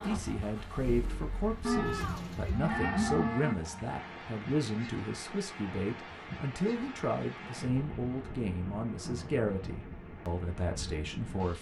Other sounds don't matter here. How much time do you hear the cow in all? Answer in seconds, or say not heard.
2 s.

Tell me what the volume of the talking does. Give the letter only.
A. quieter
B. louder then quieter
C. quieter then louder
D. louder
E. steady
E.